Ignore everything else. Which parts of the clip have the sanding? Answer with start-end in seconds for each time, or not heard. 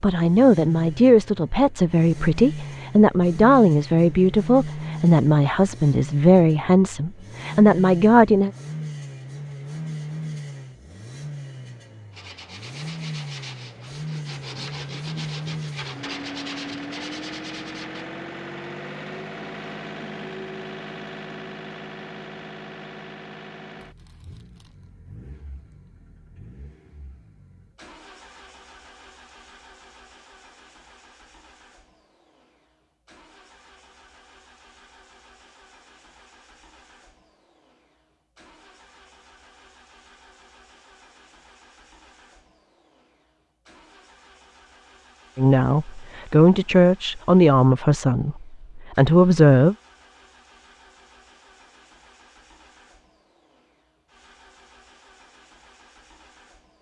12.1-18.1.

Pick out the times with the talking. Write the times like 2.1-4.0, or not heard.
0.0-8.5, 45.4-49.8.